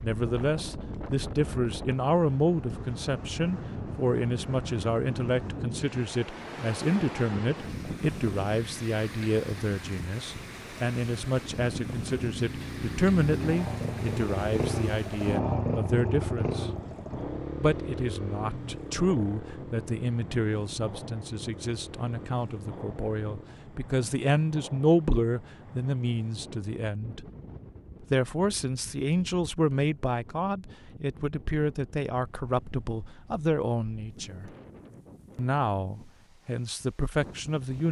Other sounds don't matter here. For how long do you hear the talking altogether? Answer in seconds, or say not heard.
35 s.